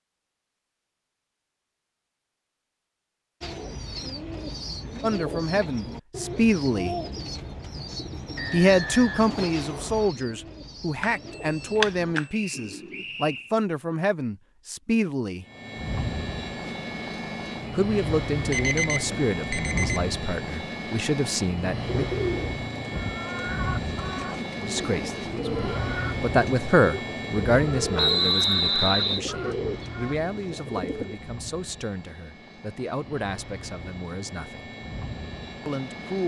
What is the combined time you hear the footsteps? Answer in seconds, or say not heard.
not heard.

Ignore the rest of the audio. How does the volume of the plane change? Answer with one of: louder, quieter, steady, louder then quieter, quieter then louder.
quieter.